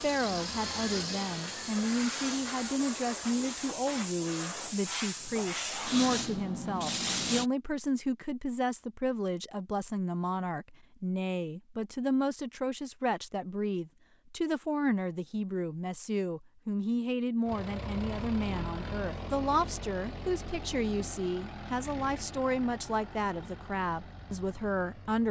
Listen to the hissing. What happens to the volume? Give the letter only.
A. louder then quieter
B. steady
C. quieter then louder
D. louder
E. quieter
D.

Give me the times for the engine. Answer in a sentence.
The engine can be heard from 0.0 to 2.8 s and from 17.4 to 25.2 s.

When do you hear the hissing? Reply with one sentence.
You can hear the hissing from 0.0 to 7.5 s.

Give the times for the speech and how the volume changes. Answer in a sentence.
You can hear the speech from 0.0 to 25.2 s, at a steady volume.